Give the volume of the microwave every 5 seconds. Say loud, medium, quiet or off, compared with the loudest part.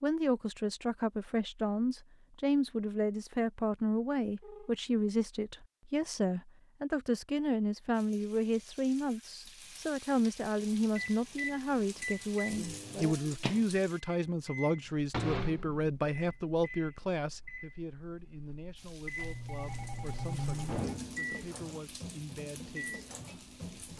off, off, loud, loud, loud.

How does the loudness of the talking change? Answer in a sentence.
The volume of the talking goes down.